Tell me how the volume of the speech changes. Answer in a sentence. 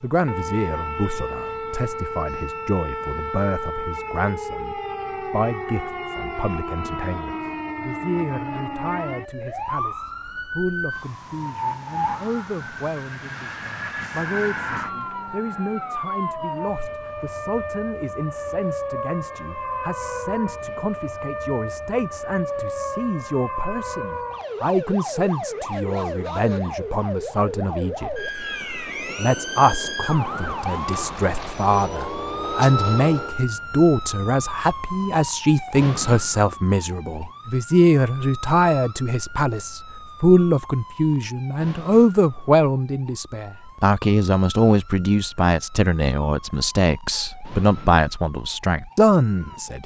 The loudness of the speech goes up.